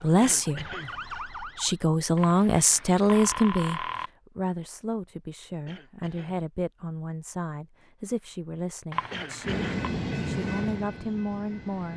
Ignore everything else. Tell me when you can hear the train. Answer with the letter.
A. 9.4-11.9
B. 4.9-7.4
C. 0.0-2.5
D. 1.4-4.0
A.